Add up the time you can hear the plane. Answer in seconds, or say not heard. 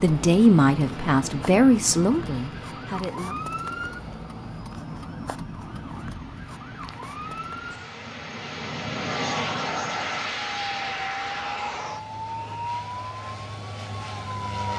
15 s.